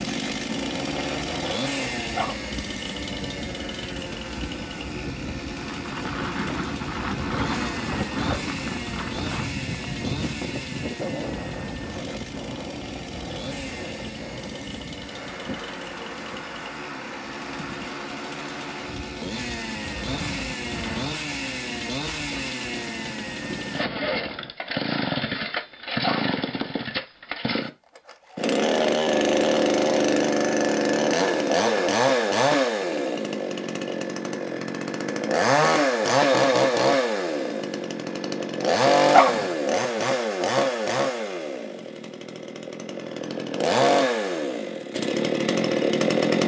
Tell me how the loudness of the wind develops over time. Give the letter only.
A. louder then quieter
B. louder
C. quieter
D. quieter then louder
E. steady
A.